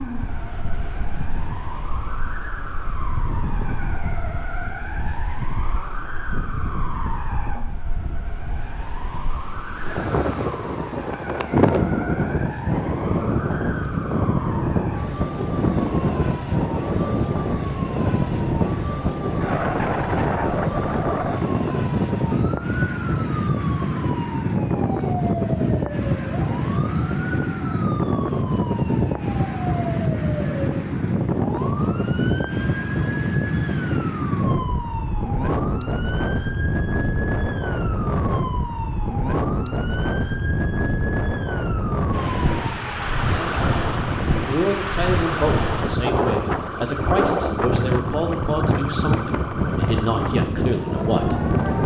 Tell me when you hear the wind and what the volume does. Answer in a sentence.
You can hear the wind from 0.0 to 51.8 s, getting louder.